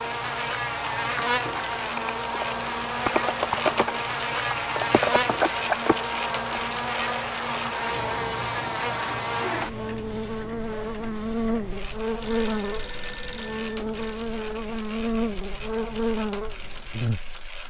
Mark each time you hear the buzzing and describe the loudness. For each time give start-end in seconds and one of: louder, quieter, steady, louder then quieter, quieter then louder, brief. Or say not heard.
0.0-17.4 steady.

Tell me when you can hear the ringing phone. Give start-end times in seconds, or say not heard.
12.2-14.2.